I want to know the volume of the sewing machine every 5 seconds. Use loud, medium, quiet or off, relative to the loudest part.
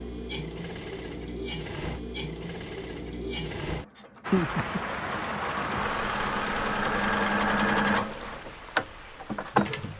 medium, loud.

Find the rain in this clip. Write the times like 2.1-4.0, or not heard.
4.2-9.9.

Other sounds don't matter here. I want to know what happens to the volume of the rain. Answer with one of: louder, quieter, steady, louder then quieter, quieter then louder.
quieter.